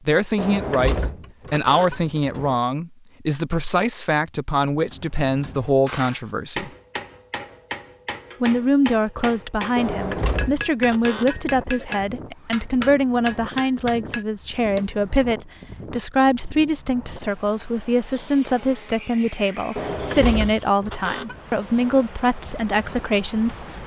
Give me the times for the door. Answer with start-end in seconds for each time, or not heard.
0.3-2.6, 9.8-11.5, 19.8-21.4.